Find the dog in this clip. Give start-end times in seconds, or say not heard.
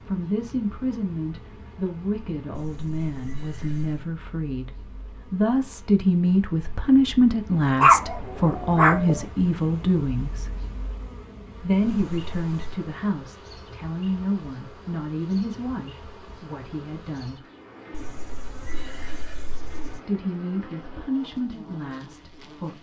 7.8-9.2.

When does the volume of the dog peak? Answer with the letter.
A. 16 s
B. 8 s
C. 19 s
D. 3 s
B.